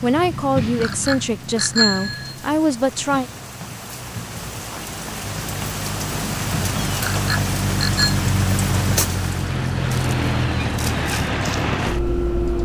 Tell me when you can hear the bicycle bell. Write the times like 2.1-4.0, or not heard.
0.8-2.4, 7.1-8.2.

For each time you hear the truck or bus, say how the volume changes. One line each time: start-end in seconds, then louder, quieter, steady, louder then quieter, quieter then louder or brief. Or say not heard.
0.0-12.5 quieter then louder.